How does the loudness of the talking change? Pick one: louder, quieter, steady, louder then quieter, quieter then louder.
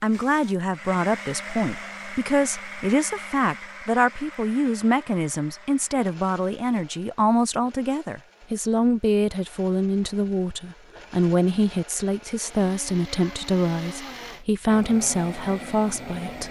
steady.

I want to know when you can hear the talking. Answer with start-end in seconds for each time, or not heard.
0.0-16.4.